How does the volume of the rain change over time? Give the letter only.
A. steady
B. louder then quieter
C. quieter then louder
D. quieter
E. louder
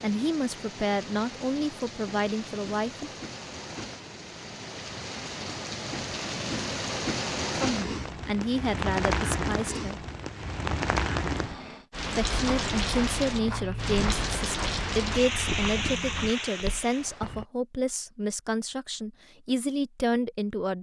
E.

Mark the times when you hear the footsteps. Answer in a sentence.
The footsteps can be heard from 12.1 to 17.4 s.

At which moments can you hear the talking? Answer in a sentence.
The talking can be heard from 0.0 to 3.1 s, from 7.6 to 9.9 s and from 12.2 to 20.7 s.